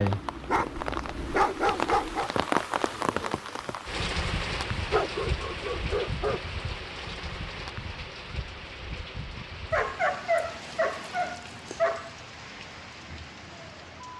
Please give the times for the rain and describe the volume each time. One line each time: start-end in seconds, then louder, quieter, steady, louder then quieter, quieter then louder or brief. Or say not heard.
0.0-14.1 quieter.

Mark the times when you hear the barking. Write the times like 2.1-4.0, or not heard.
0.5-2.3, 4.9-6.4, 9.7-12.1.